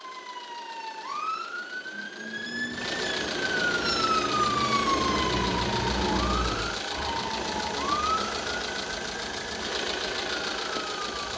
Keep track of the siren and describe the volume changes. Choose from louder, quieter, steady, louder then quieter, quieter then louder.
louder then quieter.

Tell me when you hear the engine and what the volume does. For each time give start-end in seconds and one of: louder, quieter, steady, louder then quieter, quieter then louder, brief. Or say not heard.
0.0-11.3 louder.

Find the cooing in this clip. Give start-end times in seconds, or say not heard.
not heard.